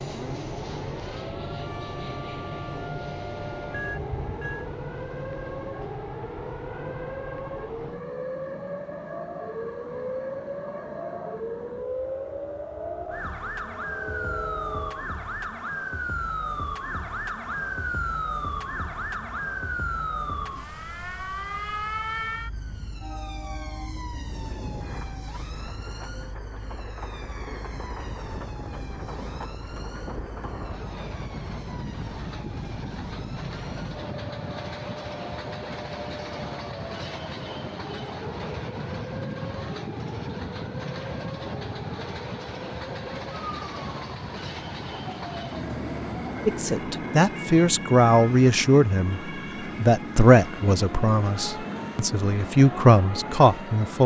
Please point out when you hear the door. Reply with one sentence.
You can't hear the door here.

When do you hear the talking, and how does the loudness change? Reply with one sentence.
You can hear the talking from 46.5 to 54.0 s, getting quieter then louder.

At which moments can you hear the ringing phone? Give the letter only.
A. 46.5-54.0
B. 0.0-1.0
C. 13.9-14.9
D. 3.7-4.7
D.